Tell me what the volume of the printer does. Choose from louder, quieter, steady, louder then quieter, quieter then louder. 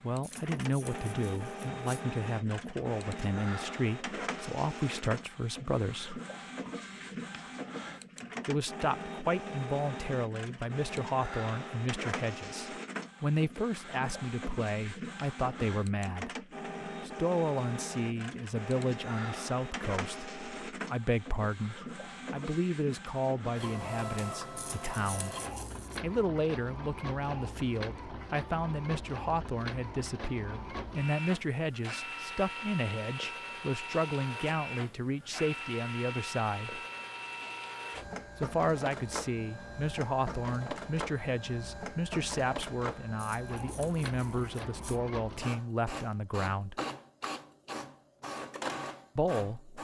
steady.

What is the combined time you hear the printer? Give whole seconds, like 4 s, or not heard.
50 s.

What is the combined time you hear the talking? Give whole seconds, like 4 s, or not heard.
42 s.